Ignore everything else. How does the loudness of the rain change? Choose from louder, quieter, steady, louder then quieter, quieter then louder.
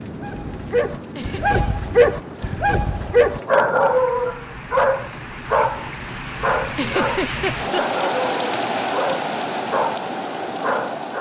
louder.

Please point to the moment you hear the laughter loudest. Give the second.
7 s.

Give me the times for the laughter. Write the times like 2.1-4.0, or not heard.
1.1-1.8, 6.7-7.8.